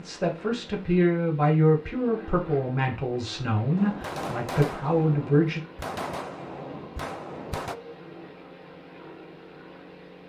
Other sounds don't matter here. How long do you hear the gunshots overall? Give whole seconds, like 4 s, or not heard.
4 s.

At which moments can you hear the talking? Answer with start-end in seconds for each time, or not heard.
0.0-5.6.